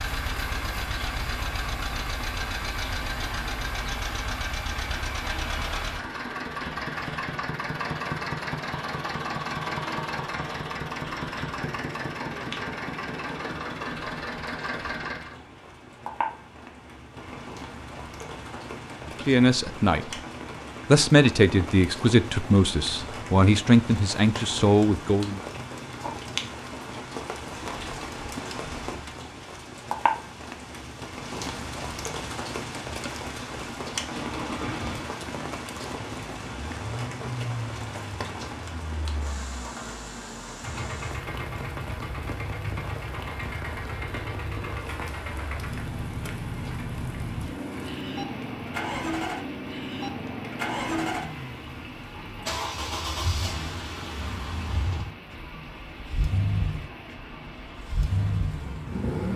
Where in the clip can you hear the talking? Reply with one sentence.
You can hear the talking from 19.2 to 20.1 s and from 20.9 to 25.4 s.